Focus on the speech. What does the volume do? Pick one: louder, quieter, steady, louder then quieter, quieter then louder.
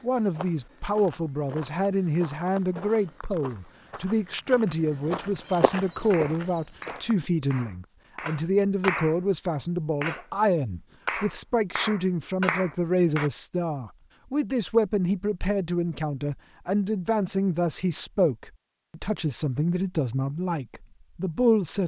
steady.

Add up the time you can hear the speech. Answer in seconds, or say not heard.
22 s.